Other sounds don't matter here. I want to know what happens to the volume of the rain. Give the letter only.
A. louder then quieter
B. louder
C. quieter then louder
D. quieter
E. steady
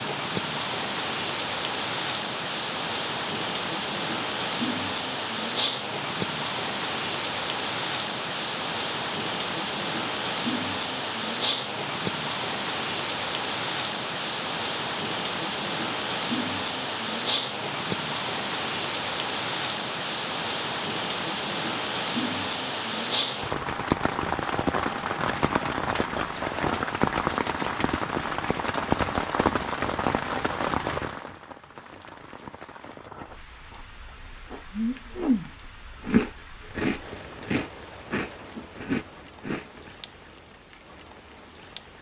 D.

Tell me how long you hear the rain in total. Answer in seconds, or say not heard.
42 s.